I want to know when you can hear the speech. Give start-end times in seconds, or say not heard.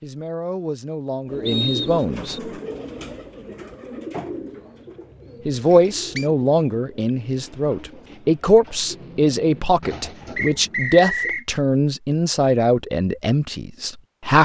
0.0-2.5, 5.5-14.4.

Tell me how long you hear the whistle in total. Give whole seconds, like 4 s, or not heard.
3 s.